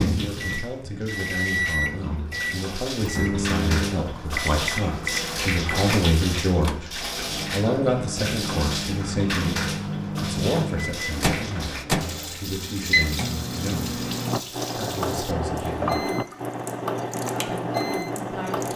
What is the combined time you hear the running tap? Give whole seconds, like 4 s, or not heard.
19 s.